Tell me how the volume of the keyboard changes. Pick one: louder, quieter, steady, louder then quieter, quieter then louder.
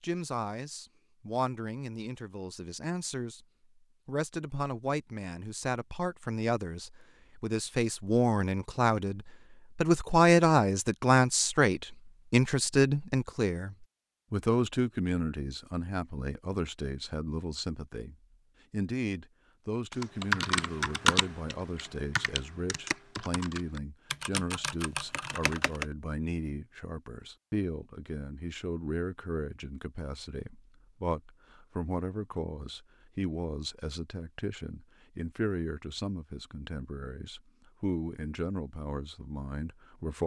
quieter.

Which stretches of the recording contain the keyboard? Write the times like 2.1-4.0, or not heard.
19.9-25.9.